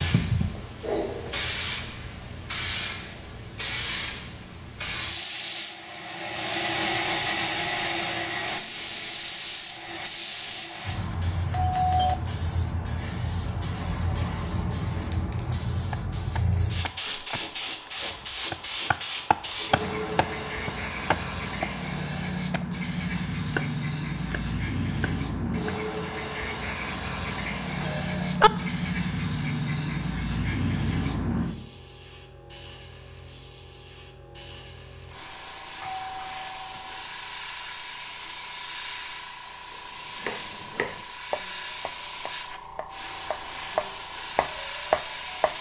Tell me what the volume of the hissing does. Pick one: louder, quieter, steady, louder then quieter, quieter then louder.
steady.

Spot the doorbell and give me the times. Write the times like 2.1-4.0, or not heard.
11.5-12.2, 27.8-28.5, 35.8-37.0.